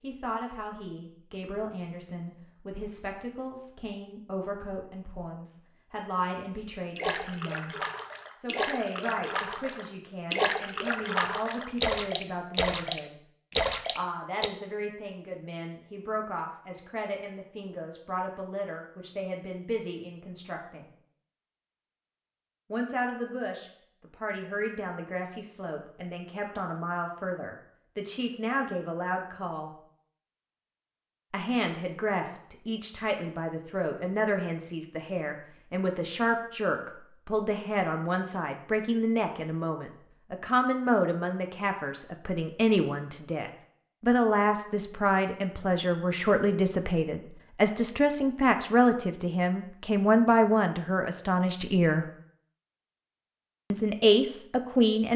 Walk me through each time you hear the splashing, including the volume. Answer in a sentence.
The splashing can be heard from 7.0 to 14.5 s, getting louder.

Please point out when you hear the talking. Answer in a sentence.
The talking can be heard from 0.0 to 7.8 s, from 8.4 to 13.2 s, from 13.9 to 20.9 s, from 22.7 to 29.7 s, from 31.3 to 52.0 s and from 53.7 to 55.1 s.